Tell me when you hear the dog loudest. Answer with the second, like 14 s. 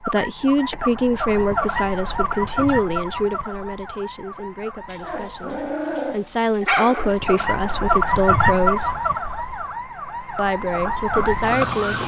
7 s.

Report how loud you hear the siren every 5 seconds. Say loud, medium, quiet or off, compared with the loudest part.
medium, loud, loud.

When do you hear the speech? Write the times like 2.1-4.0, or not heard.
0.0-9.1, 10.3-12.0.